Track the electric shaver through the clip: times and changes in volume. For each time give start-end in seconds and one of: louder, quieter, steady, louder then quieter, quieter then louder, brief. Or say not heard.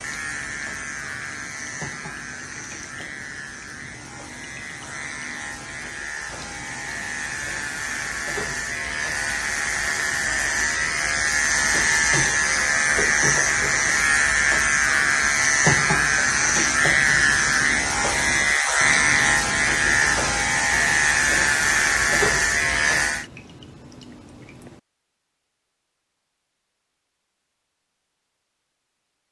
0.0-23.2 louder.